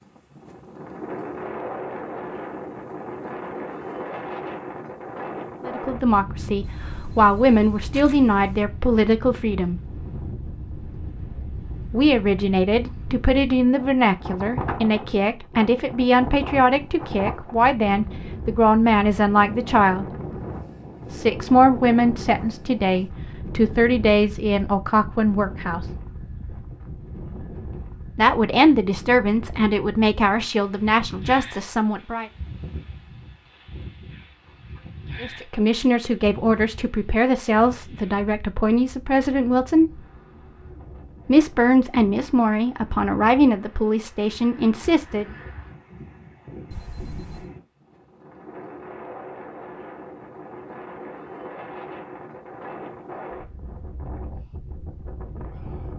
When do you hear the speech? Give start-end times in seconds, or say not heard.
5.7-9.8, 11.9-20.1, 21.1-25.9, 28.1-32.2, 35.2-40.0, 41.2-45.2.